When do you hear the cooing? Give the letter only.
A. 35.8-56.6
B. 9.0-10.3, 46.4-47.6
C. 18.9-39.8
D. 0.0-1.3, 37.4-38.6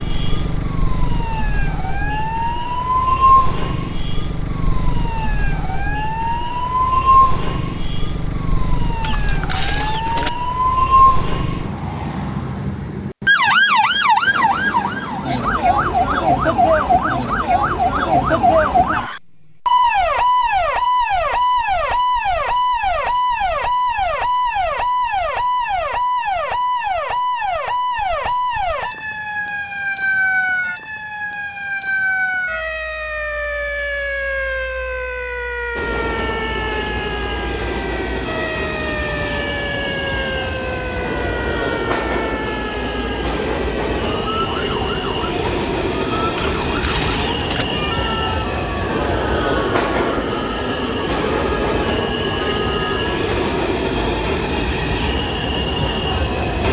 B.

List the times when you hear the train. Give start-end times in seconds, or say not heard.
35.8-56.6.